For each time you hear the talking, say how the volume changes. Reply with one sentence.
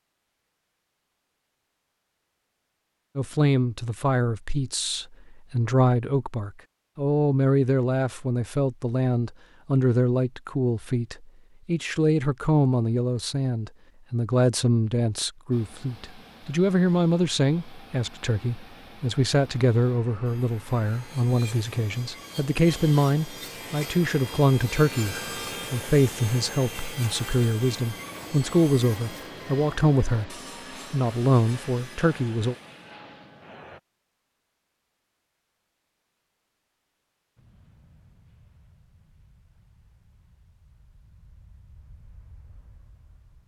You can hear the talking from 3.1 to 32.5 s, at a steady volume.